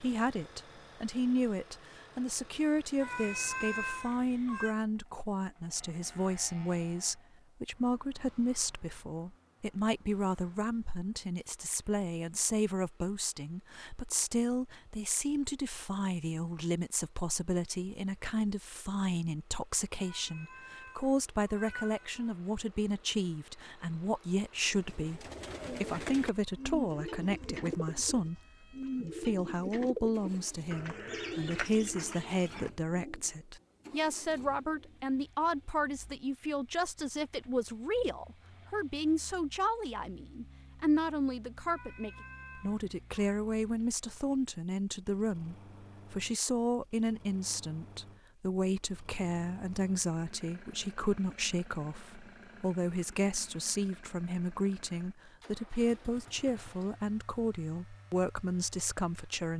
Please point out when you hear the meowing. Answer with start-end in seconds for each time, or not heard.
3.0-4.8, 19.9-22.4, 41.6-43.3.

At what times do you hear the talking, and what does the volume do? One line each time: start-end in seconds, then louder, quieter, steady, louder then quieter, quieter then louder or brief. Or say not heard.
0.0-59.5 steady.